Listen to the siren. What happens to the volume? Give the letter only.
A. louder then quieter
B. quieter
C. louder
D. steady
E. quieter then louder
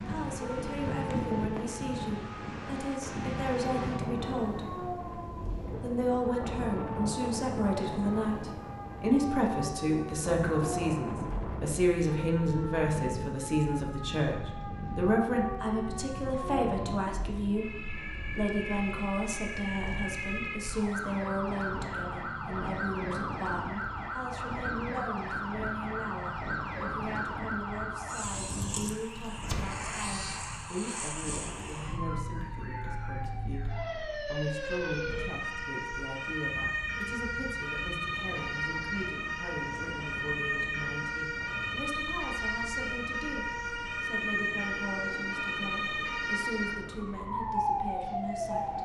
C.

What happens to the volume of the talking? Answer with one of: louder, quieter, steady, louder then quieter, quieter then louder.
quieter.